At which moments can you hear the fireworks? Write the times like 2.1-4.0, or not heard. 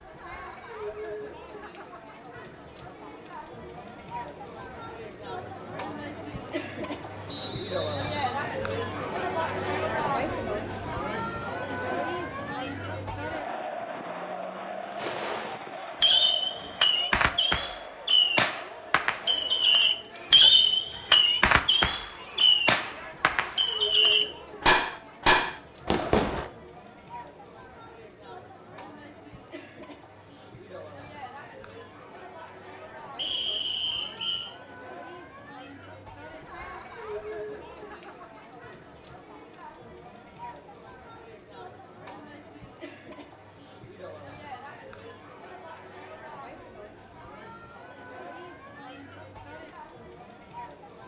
14.9-26.5.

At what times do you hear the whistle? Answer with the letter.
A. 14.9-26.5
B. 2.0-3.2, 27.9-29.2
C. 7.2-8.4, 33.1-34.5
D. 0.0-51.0
C.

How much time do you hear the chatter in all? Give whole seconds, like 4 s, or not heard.
51 s.